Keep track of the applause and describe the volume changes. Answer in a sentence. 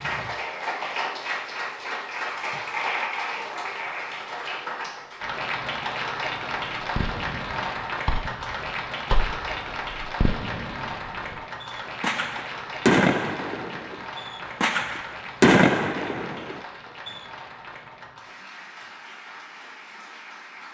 The volume of the applause goes down.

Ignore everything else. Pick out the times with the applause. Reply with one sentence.
You can hear the applause from 0.0 to 20.7 s.